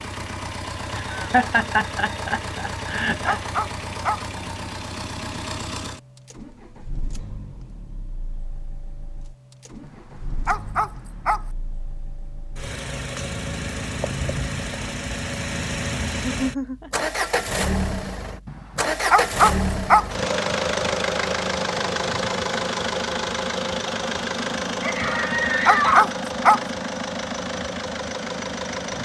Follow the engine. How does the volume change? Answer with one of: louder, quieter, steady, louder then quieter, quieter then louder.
quieter then louder.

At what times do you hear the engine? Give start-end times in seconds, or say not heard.
0.0-29.0.